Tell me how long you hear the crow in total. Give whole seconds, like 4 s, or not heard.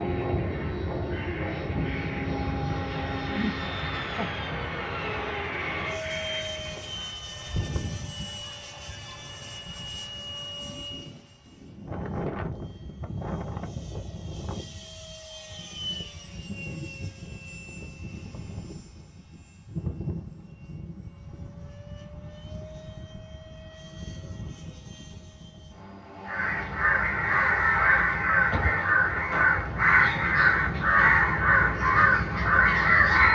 14 s.